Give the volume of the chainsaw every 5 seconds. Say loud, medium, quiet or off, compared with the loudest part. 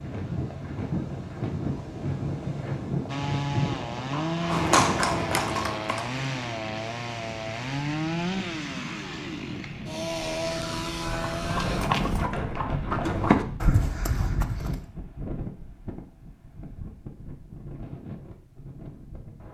loud, loud, loud, off.